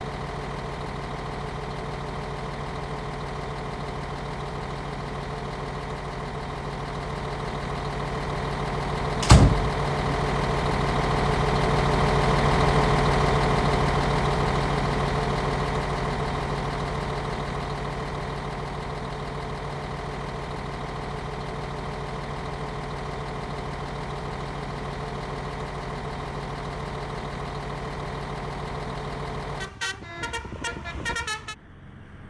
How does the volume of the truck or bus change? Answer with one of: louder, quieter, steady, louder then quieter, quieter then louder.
louder then quieter.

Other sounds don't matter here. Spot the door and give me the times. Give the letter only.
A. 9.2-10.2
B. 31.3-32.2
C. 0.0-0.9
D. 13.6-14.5
A.